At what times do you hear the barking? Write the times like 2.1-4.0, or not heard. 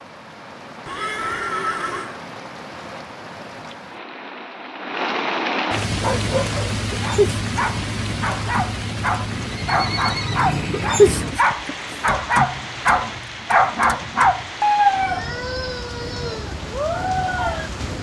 5.8-17.7.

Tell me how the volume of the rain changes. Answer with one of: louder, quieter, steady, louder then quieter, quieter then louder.
louder then quieter.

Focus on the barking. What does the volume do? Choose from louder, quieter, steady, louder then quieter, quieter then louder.
louder then quieter.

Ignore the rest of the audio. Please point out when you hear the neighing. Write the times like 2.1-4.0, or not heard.
0.8-2.2, 9.3-11.3.